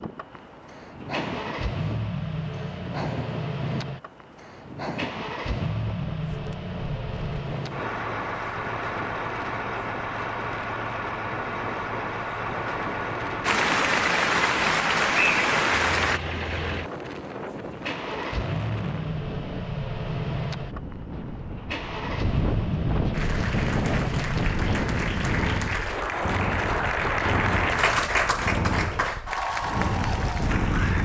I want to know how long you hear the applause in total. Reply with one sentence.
The applause can be heard for 11 seconds in total.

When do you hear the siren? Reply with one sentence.
You can't hear the siren here.